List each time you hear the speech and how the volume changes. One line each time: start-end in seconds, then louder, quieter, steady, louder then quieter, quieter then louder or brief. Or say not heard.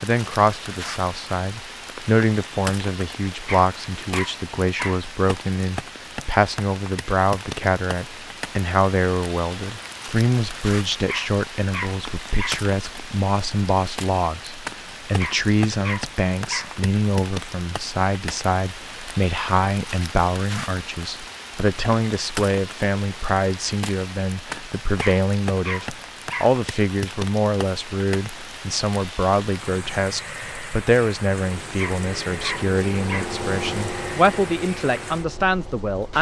0.0-36.1 steady.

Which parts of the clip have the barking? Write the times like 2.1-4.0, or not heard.
3.5-5.0, 11.1-12.7, 15.2-16.8, 25.0-26.6, 31.8-33.4.